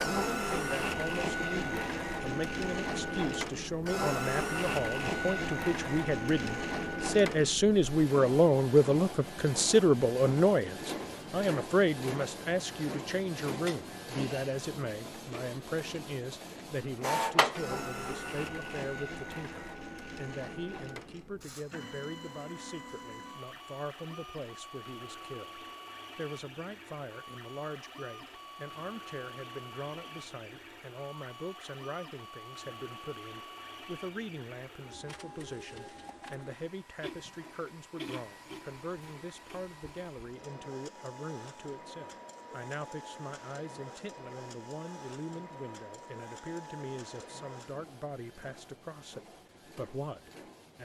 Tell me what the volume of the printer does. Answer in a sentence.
The loudness of the printer goes down.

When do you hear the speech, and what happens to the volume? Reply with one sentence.
The speech can be heard from 0.0 to 50.8 s, getting quieter.